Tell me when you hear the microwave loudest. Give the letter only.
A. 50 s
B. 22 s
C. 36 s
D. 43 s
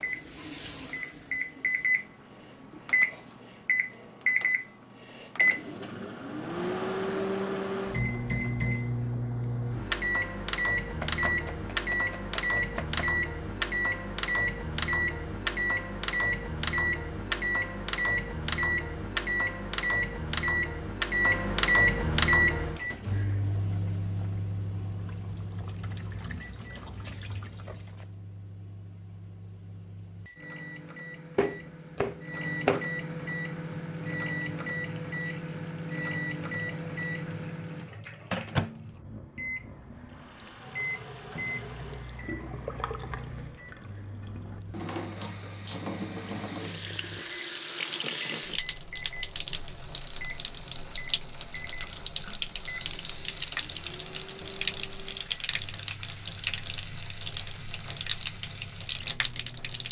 B.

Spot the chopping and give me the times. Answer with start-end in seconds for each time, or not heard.
11.0-13.0, 31.4-32.9.